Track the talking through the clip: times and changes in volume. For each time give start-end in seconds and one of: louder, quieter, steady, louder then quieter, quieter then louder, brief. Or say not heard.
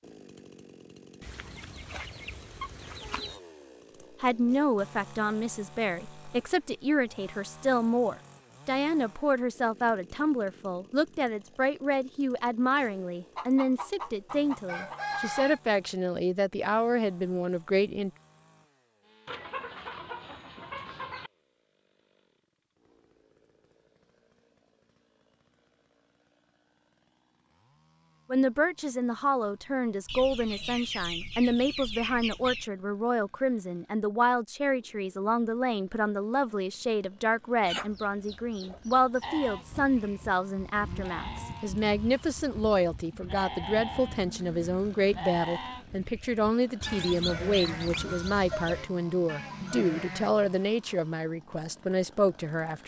4.2-18.1 steady
28.3-52.8 steady.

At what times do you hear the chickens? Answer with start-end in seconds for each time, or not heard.
1.2-3.4, 13.3-15.6, 19.2-21.3, 30.1-32.7, 37.6-40.0, 46.8-48.8.